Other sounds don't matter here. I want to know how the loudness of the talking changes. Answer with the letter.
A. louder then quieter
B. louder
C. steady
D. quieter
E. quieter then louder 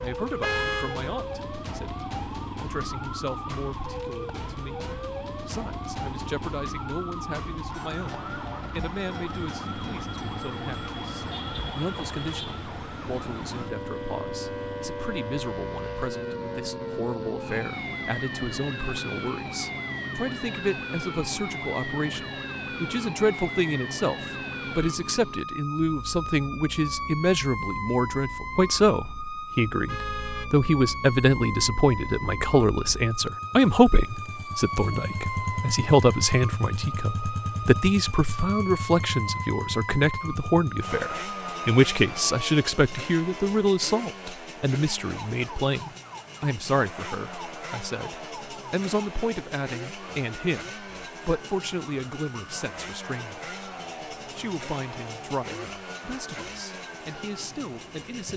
A.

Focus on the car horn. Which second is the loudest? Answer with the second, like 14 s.
1 s.